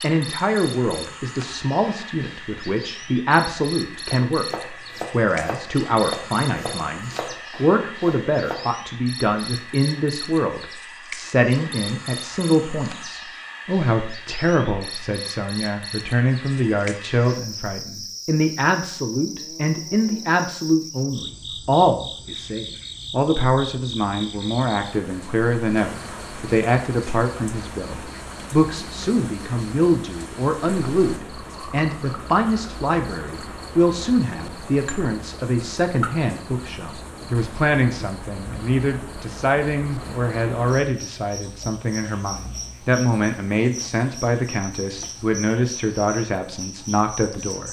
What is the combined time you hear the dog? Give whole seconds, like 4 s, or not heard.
not heard.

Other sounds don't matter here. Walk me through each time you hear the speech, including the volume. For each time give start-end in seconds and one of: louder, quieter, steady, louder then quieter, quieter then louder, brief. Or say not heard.
0.0-47.6 steady.